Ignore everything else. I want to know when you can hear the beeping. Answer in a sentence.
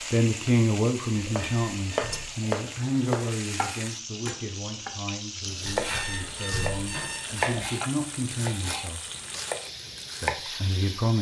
The beeping can be heard from 1.3 to 2.4 s and from 5.7 to 7.7 s.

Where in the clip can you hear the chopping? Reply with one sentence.
The chopping can be heard from 1.2 to 10.4 s.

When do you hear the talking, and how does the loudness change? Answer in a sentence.
You can hear the talking from 0.1 to 9.0 s, getting quieter then louder; and briefly from 10.2 to 11.1 s.